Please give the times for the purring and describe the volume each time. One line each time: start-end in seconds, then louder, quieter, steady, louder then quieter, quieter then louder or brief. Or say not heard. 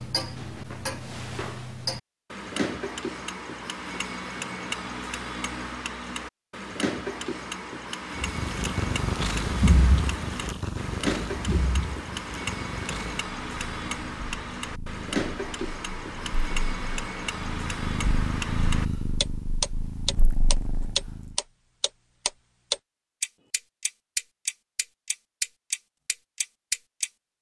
8.2-21.4 quieter then louder.